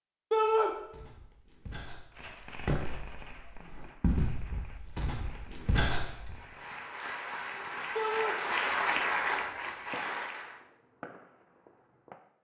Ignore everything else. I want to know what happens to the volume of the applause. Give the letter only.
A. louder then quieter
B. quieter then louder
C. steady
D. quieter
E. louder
A.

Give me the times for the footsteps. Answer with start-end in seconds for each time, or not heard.
0.7-6.3.